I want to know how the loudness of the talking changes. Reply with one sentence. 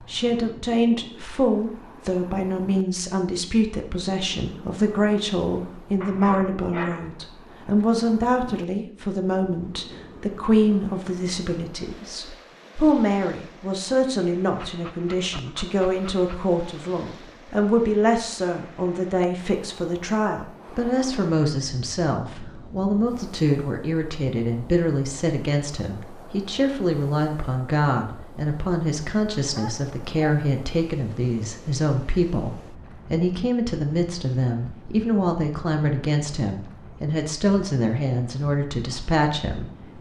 The volume of the talking stays about the same.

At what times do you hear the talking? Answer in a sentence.
The talking can be heard from 0.1 to 39.9 s.